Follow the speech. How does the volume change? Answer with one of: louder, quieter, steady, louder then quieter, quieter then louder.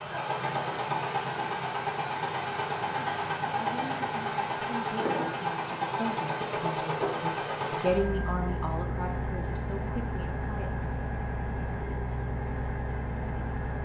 louder then quieter.